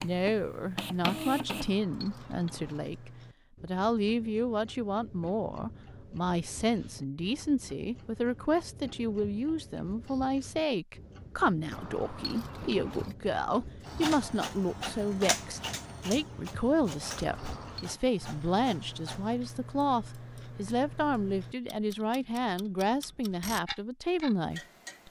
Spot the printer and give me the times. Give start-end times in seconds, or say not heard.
0.0-1.7, 13.8-19.4.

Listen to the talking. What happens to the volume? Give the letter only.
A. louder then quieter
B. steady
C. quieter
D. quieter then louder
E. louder
B.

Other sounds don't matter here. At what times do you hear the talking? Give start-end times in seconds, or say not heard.
0.0-25.0.